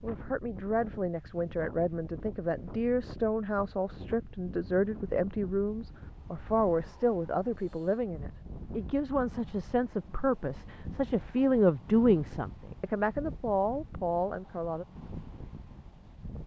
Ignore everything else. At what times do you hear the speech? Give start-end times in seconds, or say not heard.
0.0-14.8.